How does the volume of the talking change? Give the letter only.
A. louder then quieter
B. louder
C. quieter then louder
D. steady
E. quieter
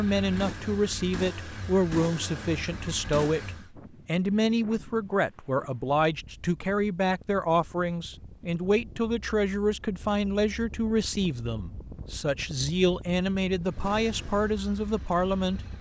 D.